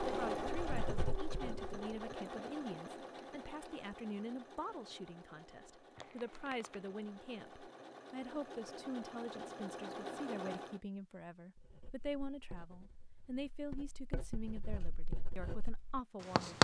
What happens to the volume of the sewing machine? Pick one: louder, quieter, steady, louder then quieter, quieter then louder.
quieter then louder.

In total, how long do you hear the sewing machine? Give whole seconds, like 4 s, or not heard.
11 s.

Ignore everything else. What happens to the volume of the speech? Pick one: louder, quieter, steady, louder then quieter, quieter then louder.
steady.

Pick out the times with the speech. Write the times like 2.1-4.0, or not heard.
0.1-16.5.